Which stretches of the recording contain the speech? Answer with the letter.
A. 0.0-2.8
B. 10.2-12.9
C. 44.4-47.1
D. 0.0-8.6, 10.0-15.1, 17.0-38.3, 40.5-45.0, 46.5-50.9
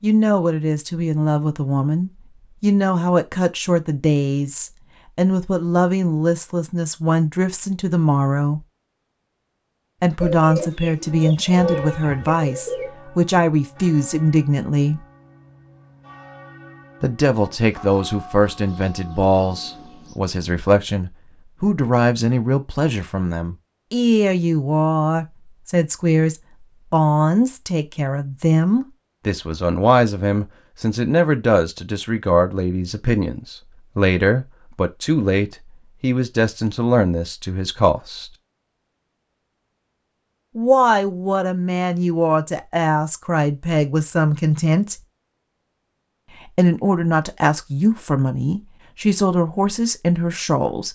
D.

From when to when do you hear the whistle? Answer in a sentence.
The whistle can't be heard in this clip.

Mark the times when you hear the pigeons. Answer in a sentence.
You can hear the pigeons from 10.2 to 12.9 s.